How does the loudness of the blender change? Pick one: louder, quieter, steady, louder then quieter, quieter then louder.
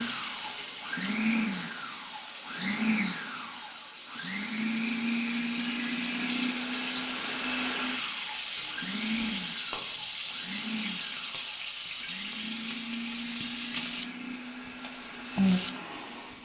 quieter.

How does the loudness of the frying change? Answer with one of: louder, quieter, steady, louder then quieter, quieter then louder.
louder.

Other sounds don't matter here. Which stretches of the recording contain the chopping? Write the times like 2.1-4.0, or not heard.
not heard.